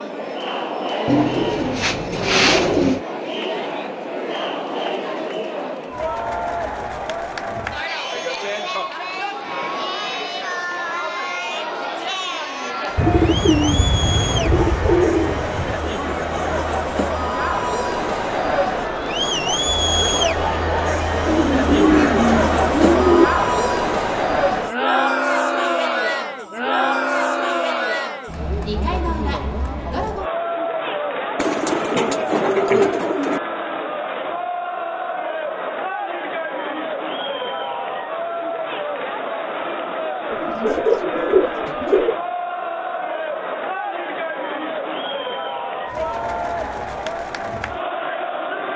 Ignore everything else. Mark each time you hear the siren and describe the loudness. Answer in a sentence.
The siren can't be heard in this clip.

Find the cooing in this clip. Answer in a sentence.
You can hear the cooing from 1.1 to 3.0 s, from 12.9 to 15.8 s, from 21.2 to 23.2 s, from 31.4 to 33.4 s and from 40.3 to 42.1 s.